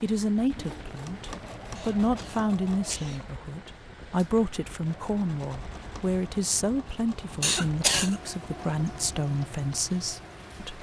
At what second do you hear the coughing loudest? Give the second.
8 s.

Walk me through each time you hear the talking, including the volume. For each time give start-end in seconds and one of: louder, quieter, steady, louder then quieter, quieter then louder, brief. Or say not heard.
0.0-10.7 steady.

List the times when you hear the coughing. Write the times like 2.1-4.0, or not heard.
1.8-3.2, 7.4-8.2.